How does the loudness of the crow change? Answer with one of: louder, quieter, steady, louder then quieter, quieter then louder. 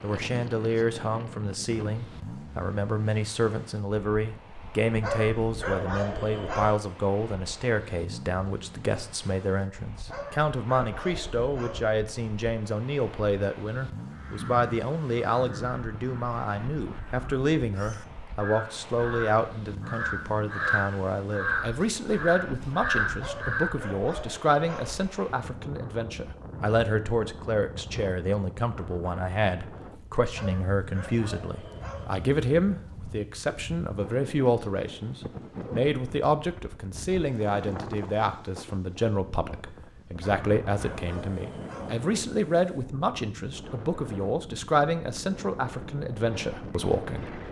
quieter then louder.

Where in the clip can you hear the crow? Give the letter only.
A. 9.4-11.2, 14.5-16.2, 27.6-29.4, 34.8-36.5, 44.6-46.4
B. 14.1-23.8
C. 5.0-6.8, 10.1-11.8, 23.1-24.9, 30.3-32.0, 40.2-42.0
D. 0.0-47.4
B.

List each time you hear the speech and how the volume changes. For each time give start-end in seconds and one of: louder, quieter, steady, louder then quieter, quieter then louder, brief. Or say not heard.
0.0-47.4 steady.